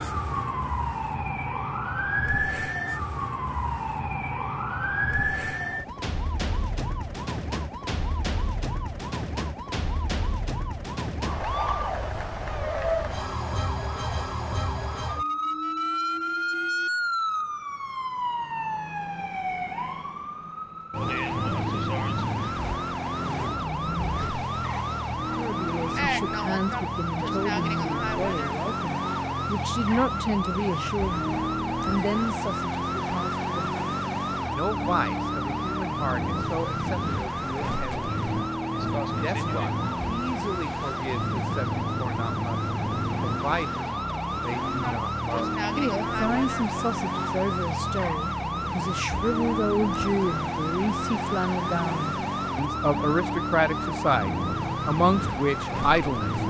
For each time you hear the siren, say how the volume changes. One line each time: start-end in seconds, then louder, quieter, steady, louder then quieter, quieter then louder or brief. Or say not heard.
0.0-56.4 steady.